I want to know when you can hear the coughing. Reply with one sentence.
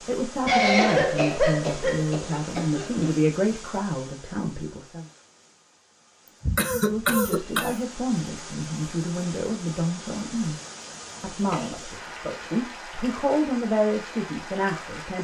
The coughing can be heard from 0.5 to 3.1 s, from 6.4 to 7.8 s and from 11.5 to 12.2 s.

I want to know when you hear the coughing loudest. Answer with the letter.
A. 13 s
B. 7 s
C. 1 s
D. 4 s
C.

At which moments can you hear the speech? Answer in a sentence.
The speech can be heard from 0.1 to 5.0 s, from 6.7 to 10.6 s and from 11.2 to 15.2 s.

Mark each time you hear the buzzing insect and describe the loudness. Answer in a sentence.
You can't hear the buzzing insect here.